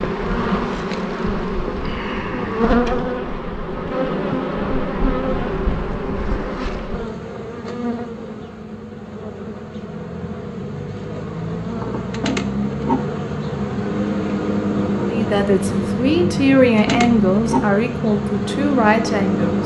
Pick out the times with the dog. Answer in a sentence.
The dog can't be heard in this clip.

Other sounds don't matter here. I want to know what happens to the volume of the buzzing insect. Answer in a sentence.
The volume of the buzzing insect goes down, then up.